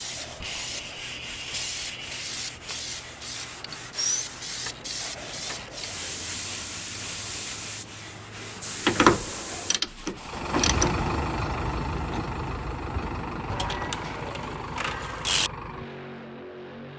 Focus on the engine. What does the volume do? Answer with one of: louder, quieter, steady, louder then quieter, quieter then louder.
quieter.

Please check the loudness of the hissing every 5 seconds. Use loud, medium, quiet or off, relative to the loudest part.
loud, loud, off, off.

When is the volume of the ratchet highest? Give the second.
9 s.